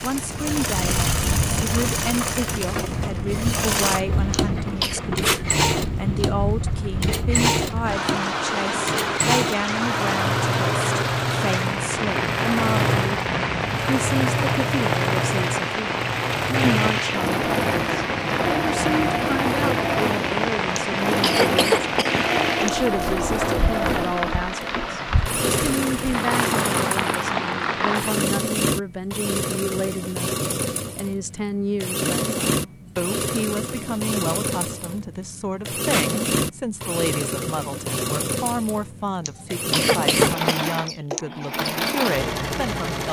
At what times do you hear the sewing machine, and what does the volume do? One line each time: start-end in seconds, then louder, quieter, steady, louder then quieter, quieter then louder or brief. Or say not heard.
0.0-43.0 steady.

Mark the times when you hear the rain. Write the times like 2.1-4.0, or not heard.
0.0-28.2.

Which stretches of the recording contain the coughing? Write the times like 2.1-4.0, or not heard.
4.3-5.0, 20.8-22.7, 39.2-41.2.